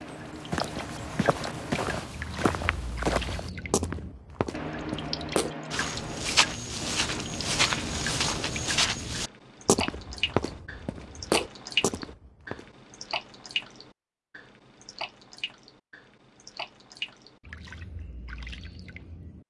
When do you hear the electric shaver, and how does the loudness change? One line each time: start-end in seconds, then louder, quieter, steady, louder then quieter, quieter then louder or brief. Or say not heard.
not heard.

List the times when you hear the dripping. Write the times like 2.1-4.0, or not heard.
0.0-19.4.